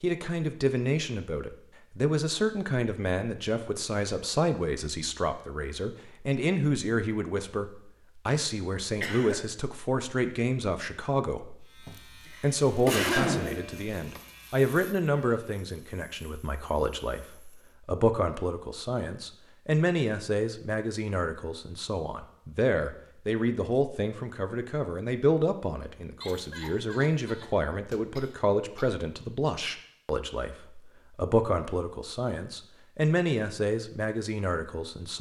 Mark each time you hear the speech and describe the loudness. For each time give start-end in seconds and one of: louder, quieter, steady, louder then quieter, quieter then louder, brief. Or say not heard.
0.0-35.1 steady.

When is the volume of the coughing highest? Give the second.
13 s.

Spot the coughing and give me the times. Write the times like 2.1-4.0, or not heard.
9.0-9.4, 12.2-14.2, 26.2-28.9.